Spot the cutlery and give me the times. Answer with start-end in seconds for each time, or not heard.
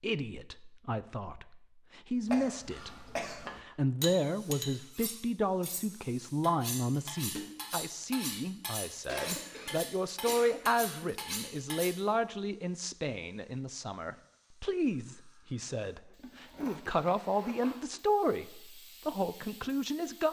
4.0-12.0.